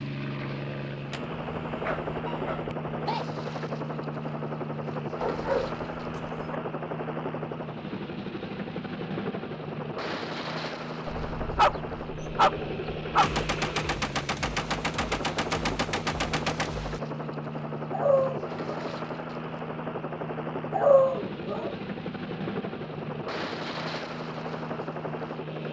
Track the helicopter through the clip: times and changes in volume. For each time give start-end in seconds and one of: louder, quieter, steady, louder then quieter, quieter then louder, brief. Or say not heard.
0.0-25.6 steady.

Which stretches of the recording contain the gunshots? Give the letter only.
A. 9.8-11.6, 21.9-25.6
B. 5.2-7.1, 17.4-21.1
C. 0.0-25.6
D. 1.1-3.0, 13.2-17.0
D.